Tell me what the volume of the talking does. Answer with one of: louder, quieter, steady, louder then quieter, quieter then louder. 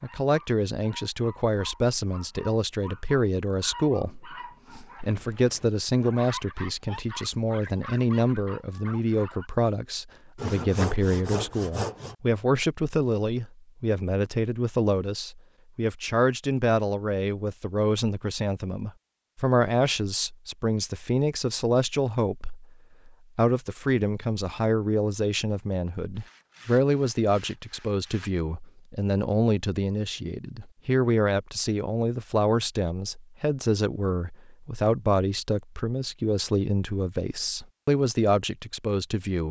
steady.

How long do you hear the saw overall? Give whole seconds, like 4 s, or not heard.
4 s.